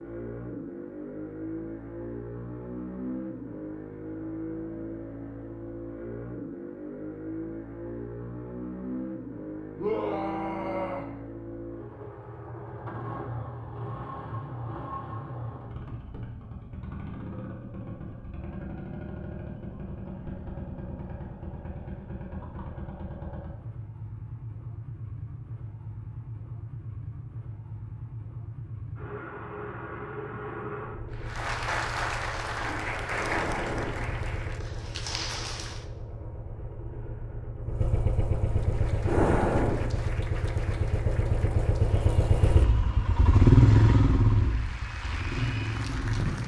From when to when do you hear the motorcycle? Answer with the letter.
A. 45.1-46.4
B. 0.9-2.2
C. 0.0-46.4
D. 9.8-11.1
C.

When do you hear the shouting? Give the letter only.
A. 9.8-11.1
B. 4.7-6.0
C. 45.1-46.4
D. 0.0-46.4
A.